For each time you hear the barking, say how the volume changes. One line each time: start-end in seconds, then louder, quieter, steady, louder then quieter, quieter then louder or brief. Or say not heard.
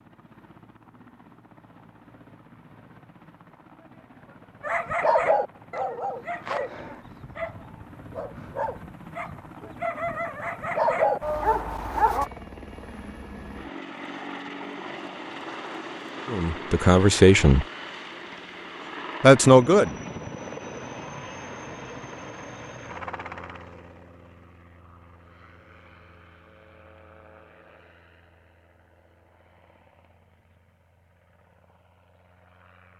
4.6-12.2 quieter then louder.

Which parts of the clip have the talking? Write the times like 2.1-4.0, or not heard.
16.3-17.6, 19.2-19.9.